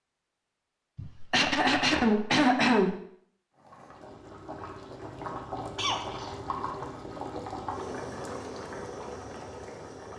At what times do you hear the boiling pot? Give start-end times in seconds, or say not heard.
3.5-10.1.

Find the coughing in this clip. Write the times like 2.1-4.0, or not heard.
0.9-3.0, 5.8-6.3.